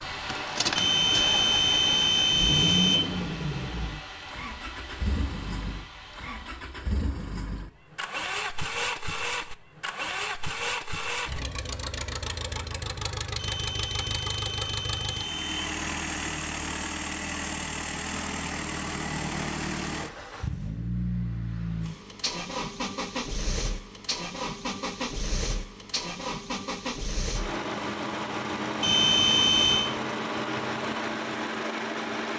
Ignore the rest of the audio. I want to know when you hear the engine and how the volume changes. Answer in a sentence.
The engine can be heard from 0.0 to 32.3 s, at a steady volume.